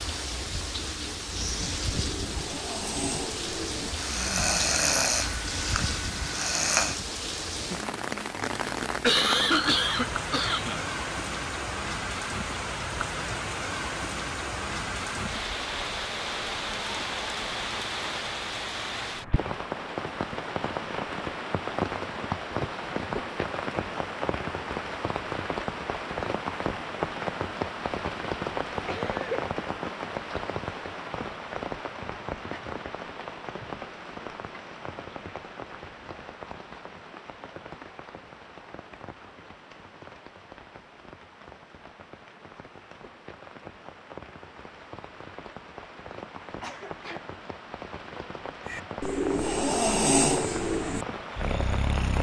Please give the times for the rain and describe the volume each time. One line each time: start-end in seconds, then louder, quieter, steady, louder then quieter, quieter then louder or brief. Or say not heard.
0.0-52.1 quieter.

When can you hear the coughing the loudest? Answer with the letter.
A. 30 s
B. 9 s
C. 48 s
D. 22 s
B.